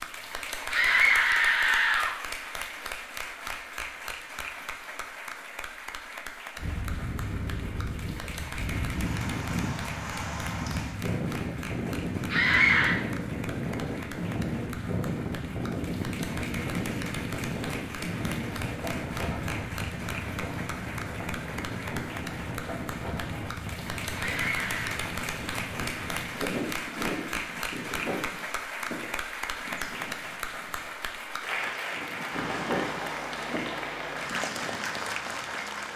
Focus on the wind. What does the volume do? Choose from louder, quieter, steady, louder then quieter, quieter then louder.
quieter.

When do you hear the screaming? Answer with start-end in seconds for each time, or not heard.
0.7-2.1, 12.3-12.9, 24.1-24.9.